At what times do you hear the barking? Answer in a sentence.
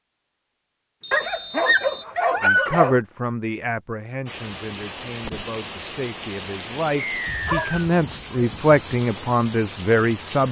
The barking can be heard from 1.1 to 3.0 s and from 7.2 to 8.7 s.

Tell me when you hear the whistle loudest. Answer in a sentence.
The volume of the whistle peaks at 7 seconds.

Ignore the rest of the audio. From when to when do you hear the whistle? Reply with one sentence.
You can hear the whistle from 1.0 to 2.0 s and from 7.0 to 7.7 s.